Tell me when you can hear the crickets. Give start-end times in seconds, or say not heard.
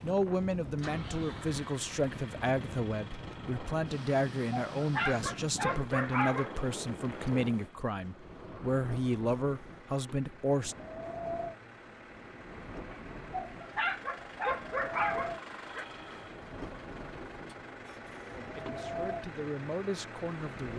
not heard.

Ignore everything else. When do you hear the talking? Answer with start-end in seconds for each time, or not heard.
0.0-10.8, 18.4-20.7.